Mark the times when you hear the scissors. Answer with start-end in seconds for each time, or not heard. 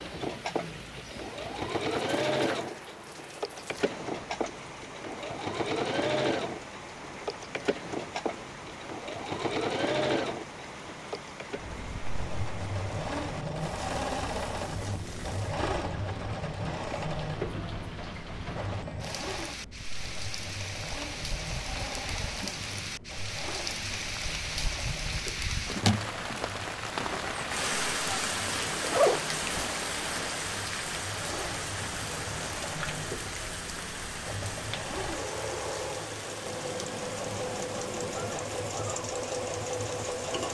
36.4-38.4.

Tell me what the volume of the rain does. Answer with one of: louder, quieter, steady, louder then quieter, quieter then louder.
louder then quieter.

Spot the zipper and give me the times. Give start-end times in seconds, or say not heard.
28.5-29.7.